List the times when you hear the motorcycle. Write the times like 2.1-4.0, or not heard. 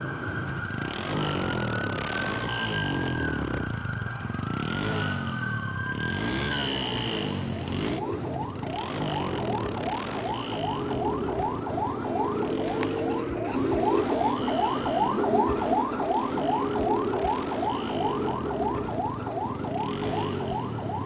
0.0-21.0.